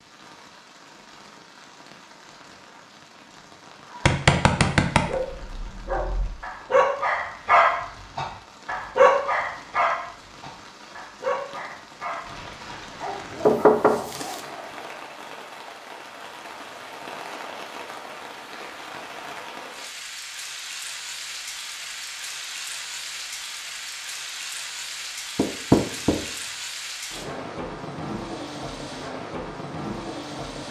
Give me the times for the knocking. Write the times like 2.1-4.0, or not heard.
4.0-5.2, 13.4-14.4, 25.4-26.2.